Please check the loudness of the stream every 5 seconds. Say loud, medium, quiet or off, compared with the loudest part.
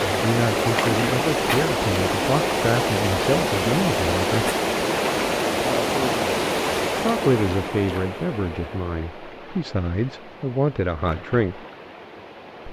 loud, loud, quiet.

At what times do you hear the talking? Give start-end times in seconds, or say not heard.
0.1-4.5, 7.0-11.6.